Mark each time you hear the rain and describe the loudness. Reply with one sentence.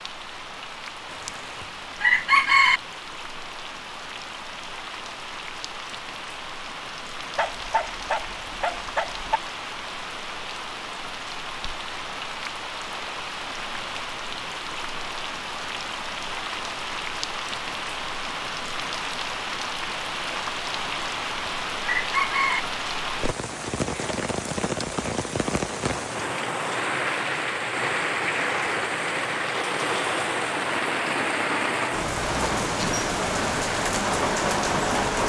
You can hear the rain from 0.0 to 35.2 s, getting louder.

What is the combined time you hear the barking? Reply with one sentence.
The barking can be heard for 2 seconds in total.